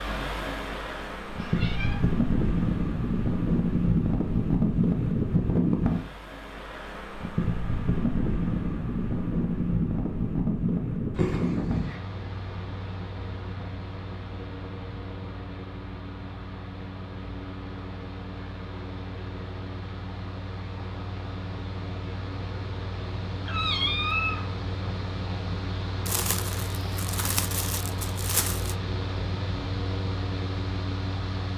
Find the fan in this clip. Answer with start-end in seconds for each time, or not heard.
0.0-31.5.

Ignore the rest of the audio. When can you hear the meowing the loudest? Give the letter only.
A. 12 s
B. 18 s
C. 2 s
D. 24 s
D.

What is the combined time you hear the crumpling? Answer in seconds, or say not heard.
3 s.